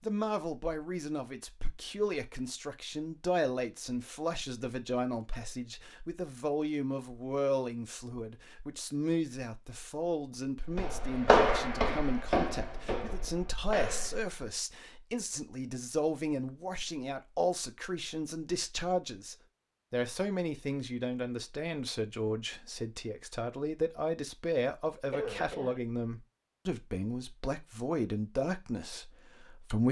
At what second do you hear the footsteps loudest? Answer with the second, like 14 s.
11 s.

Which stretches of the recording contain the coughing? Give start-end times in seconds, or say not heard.
25.1-25.8.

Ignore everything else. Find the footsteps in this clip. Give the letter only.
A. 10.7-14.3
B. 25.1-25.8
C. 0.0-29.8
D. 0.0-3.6
A.